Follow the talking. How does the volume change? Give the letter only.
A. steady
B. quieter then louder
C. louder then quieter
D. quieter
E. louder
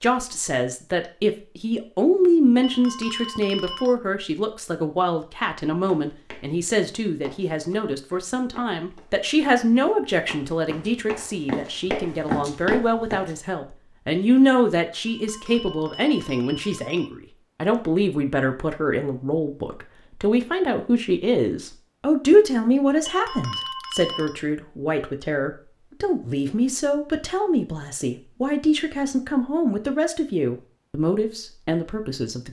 A.